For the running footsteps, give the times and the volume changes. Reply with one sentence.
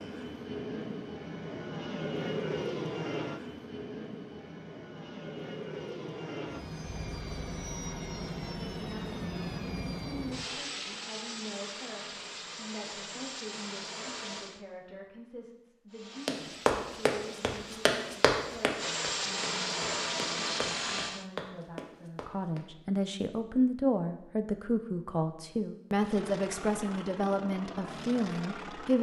You can hear the running footsteps from 16.2 to 22.6 s, getting quieter then louder.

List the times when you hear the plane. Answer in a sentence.
You can hear the plane from 0.0 to 14.6 s, from 15.9 to 21.2 s and from 25.9 to 28.9 s.